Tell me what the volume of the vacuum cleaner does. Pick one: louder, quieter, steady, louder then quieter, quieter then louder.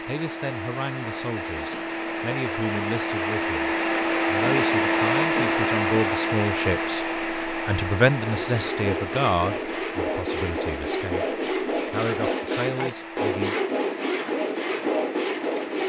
louder then quieter.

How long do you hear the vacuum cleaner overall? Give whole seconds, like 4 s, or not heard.
16 s.